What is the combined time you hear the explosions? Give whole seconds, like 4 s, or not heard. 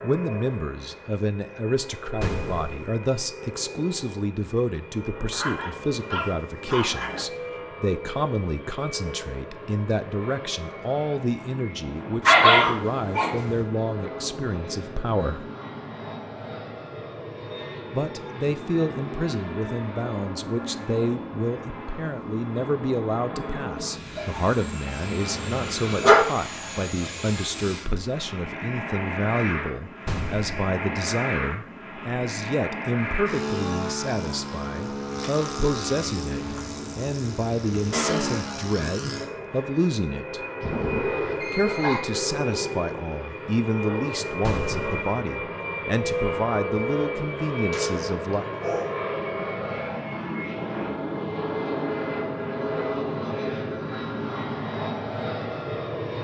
2 s.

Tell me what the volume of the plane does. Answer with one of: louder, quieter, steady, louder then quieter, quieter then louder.
louder.